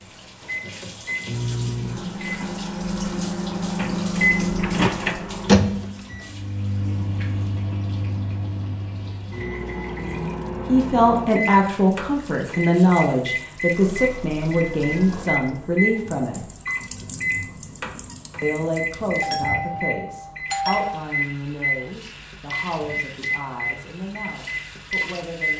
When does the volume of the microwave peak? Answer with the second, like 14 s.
5 s.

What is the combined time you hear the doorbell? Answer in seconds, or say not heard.
2 s.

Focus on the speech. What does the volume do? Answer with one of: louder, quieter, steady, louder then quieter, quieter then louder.
quieter.